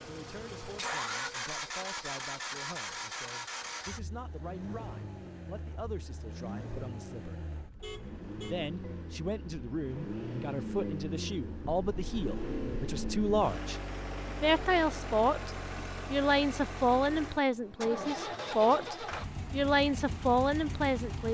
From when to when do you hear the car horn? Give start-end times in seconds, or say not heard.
7.8-8.6.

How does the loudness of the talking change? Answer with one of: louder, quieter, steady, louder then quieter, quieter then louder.
louder.